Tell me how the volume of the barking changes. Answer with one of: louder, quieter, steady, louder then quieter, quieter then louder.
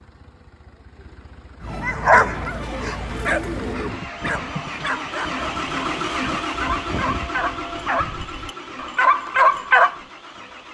quieter then louder.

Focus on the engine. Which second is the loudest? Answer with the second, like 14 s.
6 s.